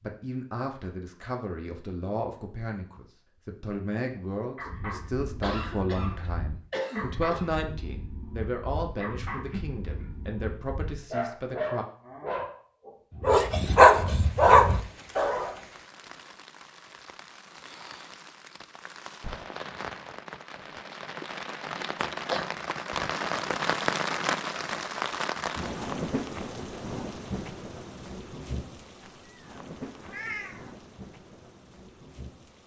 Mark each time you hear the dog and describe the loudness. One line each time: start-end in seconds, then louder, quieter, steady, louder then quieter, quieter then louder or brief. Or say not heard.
4.5-15.6 louder.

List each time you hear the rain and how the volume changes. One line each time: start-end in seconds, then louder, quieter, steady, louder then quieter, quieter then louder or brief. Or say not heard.
14.1-32.6 louder then quieter.